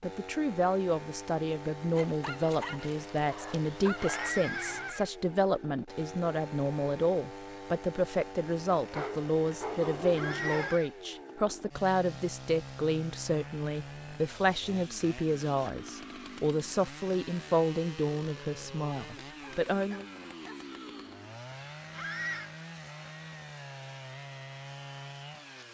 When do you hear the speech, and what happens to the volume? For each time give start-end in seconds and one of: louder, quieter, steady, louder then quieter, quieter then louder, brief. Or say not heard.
0.0-20.1 steady.